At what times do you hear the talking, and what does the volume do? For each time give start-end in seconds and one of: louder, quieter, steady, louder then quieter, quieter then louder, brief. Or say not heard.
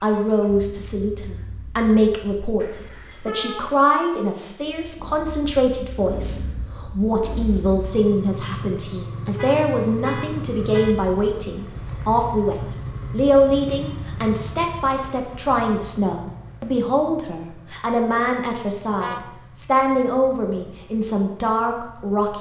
0.0-22.3 steady.